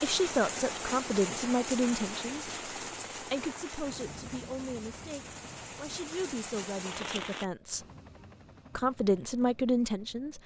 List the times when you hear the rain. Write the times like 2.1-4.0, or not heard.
0.0-7.5.